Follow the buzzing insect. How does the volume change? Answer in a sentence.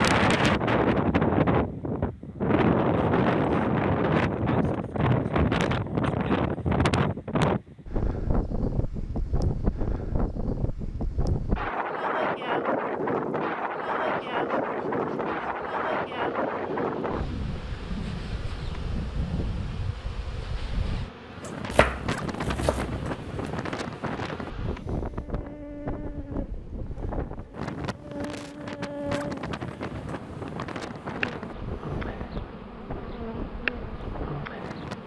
The loudness of the buzzing insect goes up.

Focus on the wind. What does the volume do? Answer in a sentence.
The loudness of the wind goes down.